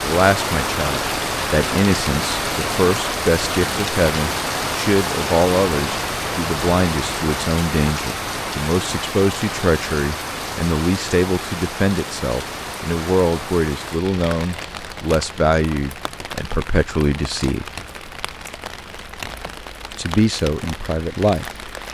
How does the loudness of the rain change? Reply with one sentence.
The loudness of the rain goes down.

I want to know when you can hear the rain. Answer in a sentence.
The rain can be heard from 0.0 to 21.8 s.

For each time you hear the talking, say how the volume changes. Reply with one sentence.
The talking can be heard from 0.0 to 17.6 s, at a steady volume; and briefly from 19.9 to 21.6 s.